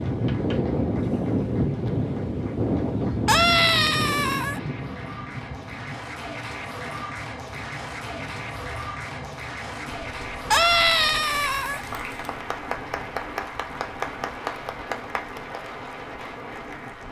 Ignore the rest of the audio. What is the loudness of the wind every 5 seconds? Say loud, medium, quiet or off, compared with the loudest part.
loud, quiet, quiet, quiet.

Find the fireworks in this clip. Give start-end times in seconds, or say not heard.
not heard.